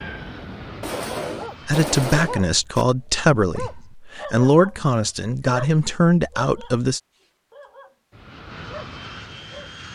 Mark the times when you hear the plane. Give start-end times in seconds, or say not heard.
0.0-1.7, 8.1-9.9.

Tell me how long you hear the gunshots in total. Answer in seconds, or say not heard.
2 s.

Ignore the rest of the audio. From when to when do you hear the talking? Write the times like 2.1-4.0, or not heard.
1.6-7.0.